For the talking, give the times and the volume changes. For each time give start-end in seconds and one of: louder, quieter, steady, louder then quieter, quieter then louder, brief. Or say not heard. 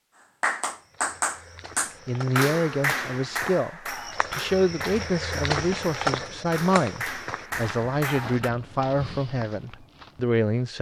2.0-10.7 steady.